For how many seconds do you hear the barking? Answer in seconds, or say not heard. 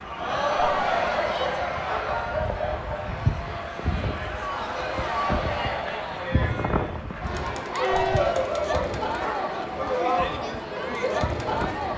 4 s.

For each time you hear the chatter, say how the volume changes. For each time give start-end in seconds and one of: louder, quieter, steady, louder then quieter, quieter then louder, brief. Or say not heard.
0.0-11.9 quieter then louder.